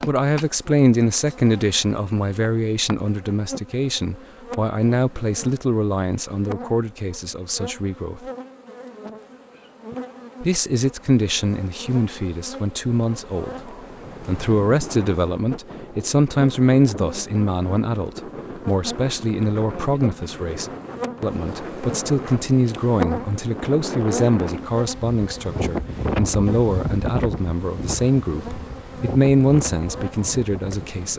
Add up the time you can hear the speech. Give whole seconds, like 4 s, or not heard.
29 s.